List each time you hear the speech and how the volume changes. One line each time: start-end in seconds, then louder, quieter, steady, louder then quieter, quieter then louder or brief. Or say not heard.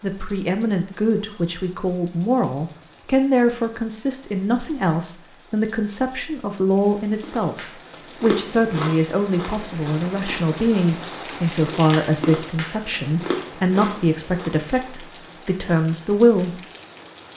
0.0-16.6 steady.